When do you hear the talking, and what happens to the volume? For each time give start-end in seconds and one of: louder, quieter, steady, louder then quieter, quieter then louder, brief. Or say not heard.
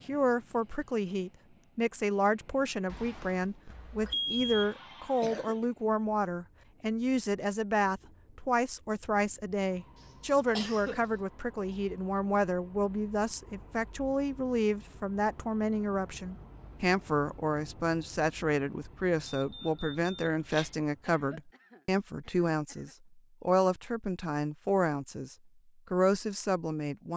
0.1-27.1 steady.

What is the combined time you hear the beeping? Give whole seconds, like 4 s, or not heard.
3 s.